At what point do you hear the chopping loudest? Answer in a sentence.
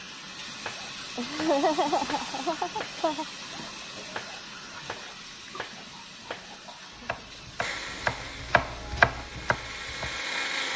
The loudest moment of the chopping is at 9 seconds.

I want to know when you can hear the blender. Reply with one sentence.
You can hear the blender from 7.6 to 10.7 s.